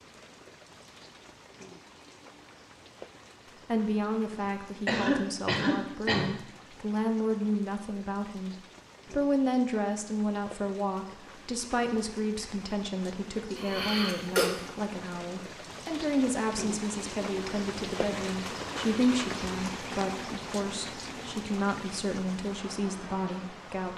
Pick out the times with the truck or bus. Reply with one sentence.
You can't hear the truck or bus here.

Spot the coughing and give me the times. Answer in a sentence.
The coughing can be heard from 4.8 to 6.3 s and from 13.6 to 14.5 s.